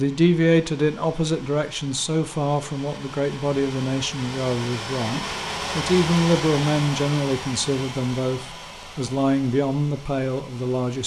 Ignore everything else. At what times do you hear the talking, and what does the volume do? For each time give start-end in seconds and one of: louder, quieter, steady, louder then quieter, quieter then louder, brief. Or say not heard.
0.0-11.0 steady.